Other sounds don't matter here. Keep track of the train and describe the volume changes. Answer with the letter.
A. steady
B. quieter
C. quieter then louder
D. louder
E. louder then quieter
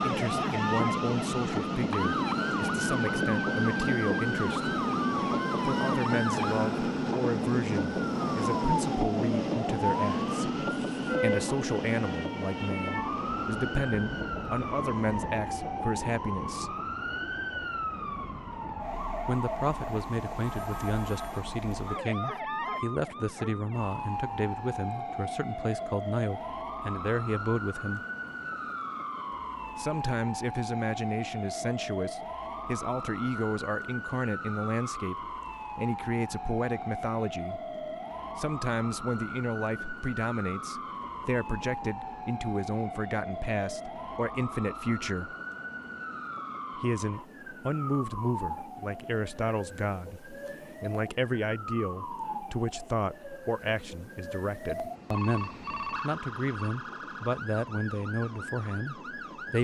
B.